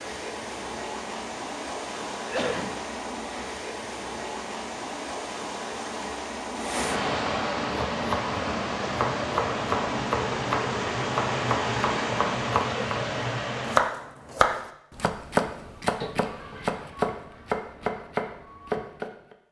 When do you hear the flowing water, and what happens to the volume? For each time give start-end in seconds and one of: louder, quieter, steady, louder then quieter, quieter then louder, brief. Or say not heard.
0.0-13.8 louder.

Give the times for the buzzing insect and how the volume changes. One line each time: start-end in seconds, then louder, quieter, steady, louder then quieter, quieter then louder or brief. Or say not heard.
not heard.